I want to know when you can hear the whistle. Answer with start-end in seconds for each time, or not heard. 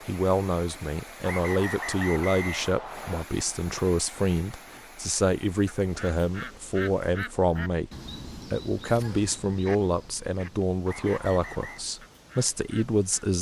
1.2-3.2, 10.8-11.8.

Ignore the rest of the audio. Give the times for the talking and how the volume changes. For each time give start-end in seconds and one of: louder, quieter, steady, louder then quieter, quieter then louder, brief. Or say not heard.
0.1-13.3 steady.